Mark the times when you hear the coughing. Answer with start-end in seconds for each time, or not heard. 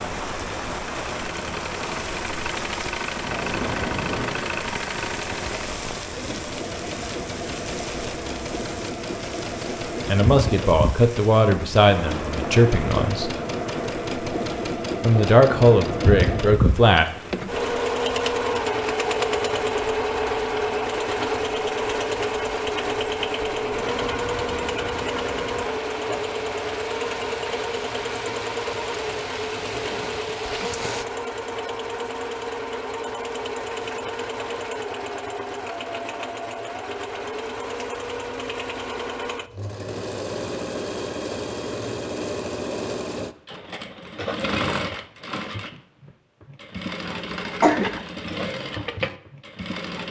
47.0-47.9.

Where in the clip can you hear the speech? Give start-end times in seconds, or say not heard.
10.1-13.3, 15.0-17.1.